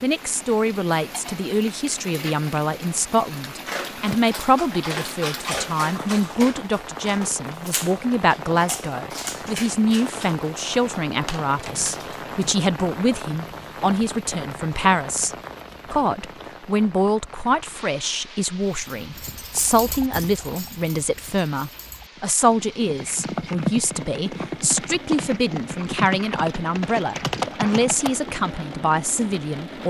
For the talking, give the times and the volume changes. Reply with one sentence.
You can hear the talking from 0.0 to 29.8 s, at a steady volume.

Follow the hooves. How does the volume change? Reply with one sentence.
The loudness of the hooves goes down, then up.